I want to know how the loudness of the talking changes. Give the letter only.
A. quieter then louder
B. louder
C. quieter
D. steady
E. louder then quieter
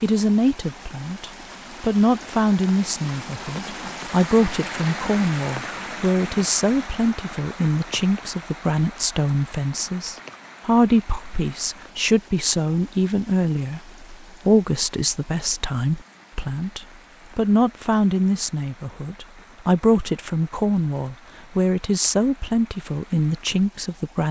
D.